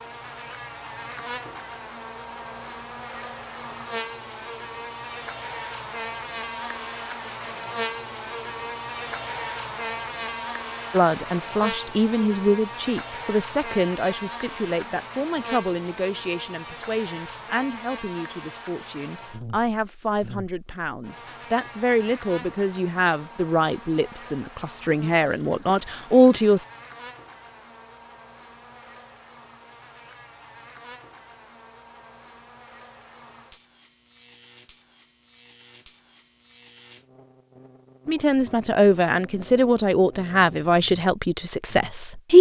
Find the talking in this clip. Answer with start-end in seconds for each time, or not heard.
10.9-26.6, 38.0-42.3.